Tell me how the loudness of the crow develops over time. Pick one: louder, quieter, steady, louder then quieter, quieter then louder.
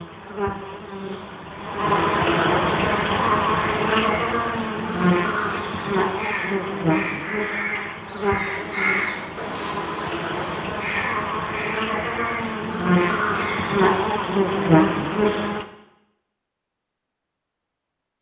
louder then quieter.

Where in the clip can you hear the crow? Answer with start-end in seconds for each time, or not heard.
2.7-13.7.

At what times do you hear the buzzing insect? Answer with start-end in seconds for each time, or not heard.
0.0-15.7.